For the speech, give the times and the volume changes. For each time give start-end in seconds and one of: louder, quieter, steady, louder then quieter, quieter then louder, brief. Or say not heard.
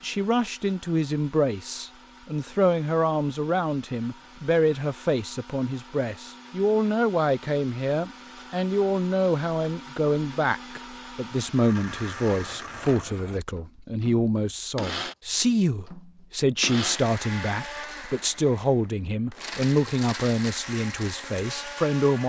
0.0-22.2 steady.